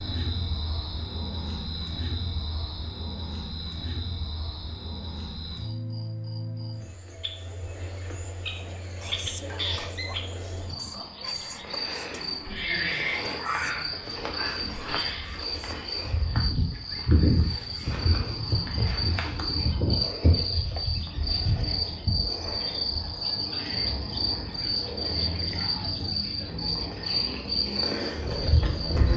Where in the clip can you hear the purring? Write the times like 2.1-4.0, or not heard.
not heard.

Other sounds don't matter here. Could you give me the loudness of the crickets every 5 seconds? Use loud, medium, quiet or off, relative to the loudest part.
medium, medium, loud, loud, loud, loud.